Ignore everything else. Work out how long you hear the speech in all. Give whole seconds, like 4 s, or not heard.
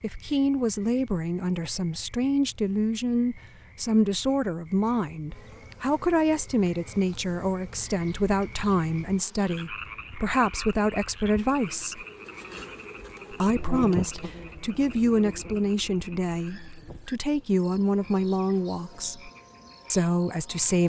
19 s.